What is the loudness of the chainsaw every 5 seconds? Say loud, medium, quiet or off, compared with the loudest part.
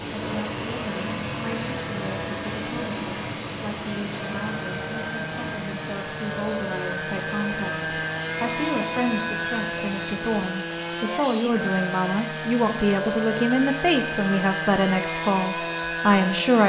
medium, loud, loud, loud.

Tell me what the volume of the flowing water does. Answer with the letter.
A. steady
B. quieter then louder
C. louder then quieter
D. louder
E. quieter
E.